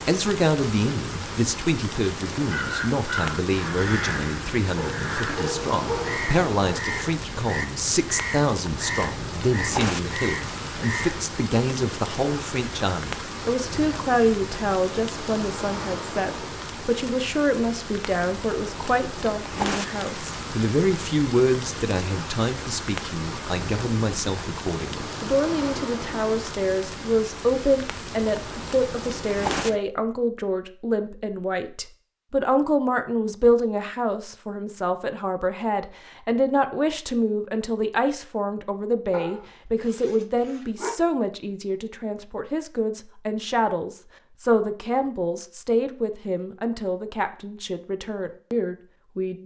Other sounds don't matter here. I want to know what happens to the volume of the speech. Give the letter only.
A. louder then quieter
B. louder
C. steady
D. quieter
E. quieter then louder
C.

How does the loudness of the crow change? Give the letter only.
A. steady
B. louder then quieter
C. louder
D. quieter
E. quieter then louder
A.